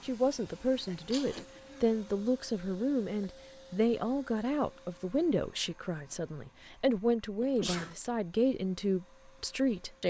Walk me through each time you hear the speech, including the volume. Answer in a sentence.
The speech can be heard from 0.0 to 10.0 s, at a steady volume.